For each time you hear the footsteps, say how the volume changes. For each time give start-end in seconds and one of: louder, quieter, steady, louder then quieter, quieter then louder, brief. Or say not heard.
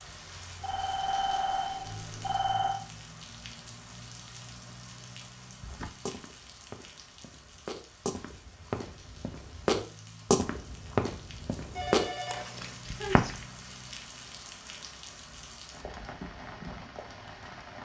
5.6-13.4 louder.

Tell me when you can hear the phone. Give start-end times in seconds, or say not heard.
0.6-2.8, 11.8-13.2.